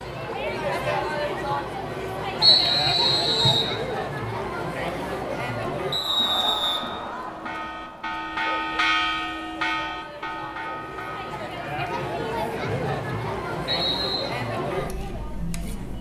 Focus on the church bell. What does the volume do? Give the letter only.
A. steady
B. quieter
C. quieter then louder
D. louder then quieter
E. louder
D.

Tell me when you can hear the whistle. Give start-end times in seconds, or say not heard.
2.4-3.7, 5.9-6.8, 12.6-14.2.